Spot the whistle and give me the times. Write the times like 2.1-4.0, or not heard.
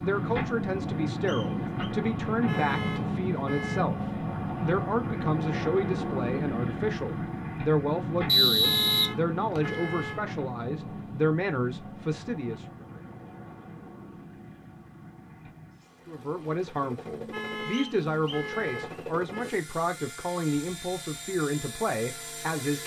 1.2-1.9, 8.2-9.8, 17.7-19.1.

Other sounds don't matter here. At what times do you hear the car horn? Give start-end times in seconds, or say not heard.
2.3-3.9, 8.5-10.3, 17.1-19.6.